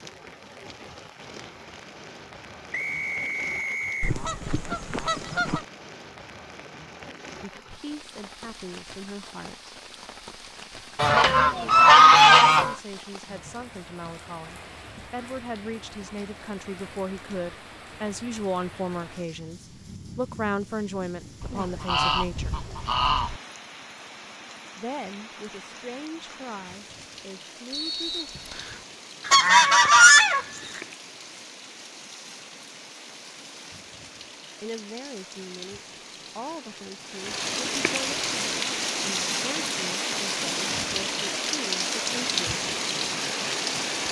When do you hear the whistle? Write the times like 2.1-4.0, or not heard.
2.7-4.2, 27.7-28.9.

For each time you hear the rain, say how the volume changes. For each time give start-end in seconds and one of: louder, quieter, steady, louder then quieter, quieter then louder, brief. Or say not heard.
0.0-44.0 louder.